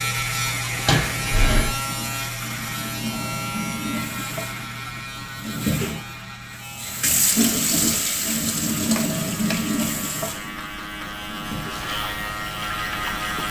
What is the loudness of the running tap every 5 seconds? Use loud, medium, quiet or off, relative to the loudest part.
medium, loud, medium.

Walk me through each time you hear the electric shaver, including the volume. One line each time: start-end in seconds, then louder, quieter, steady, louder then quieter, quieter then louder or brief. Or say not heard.
0.0-13.4 quieter then louder.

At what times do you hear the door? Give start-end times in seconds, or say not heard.
0.8-1.8, 8.9-9.6.